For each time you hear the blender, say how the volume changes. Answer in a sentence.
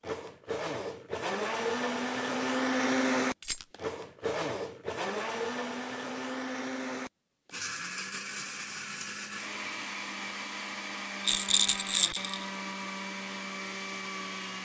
The blender can be heard from 0.0 to 14.6 s, getting quieter.